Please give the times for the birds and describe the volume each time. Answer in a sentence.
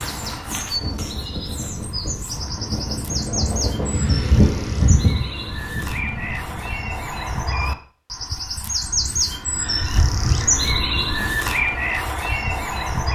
You can hear the birds from 0.0 to 13.1 s, getting louder.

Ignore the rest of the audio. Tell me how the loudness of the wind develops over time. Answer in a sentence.
The loudness of the wind goes up, then down.